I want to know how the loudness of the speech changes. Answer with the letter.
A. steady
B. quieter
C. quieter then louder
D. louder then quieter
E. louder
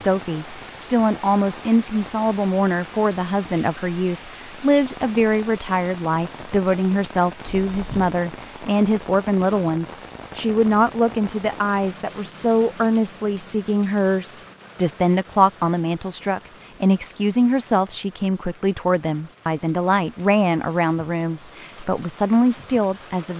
A.